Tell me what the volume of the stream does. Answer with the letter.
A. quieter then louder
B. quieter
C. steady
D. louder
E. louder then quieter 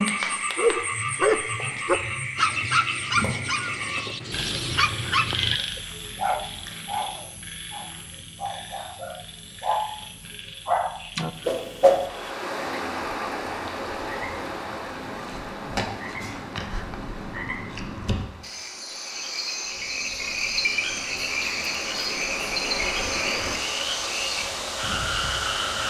A.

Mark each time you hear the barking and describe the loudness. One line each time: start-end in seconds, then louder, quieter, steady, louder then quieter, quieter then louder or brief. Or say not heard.
0.1-9.9 quieter
10.7-11.3 brief.